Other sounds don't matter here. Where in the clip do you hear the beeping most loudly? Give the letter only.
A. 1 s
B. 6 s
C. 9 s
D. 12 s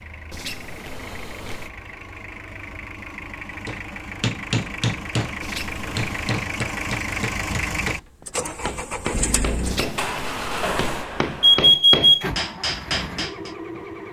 D.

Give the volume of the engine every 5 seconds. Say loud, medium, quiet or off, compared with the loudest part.
medium, loud, loud.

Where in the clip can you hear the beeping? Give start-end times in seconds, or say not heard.
0.3-1.7, 5.4-6.3, 9.6-12.2.